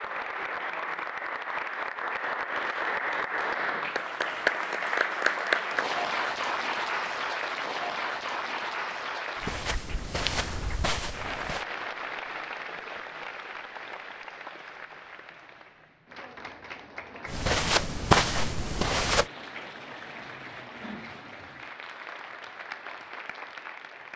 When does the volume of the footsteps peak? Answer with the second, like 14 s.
18 s.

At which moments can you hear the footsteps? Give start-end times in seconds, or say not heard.
9.3-11.7, 17.2-19.2.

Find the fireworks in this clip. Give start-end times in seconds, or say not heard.
not heard.